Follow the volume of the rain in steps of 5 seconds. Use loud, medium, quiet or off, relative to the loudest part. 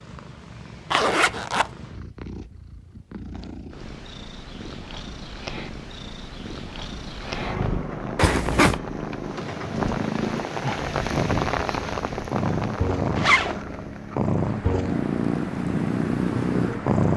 off, loud, loud, medium.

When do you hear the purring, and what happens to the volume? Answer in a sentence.
The purring can be heard from 0.0 to 17.1 s, getting louder.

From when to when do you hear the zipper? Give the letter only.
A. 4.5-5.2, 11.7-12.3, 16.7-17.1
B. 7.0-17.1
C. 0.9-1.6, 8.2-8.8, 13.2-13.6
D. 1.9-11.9
C.